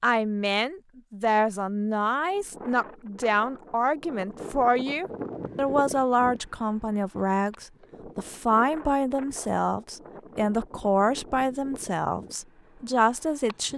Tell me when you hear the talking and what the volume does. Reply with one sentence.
The talking can be heard from 0.0 to 13.7 s, at a steady volume.